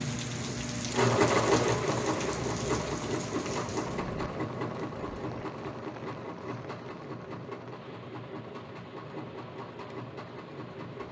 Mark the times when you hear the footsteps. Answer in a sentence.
You can't hear the footsteps here.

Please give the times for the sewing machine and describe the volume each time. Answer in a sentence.
You can hear the sewing machine from 0.0 to 11.0 s, getting quieter.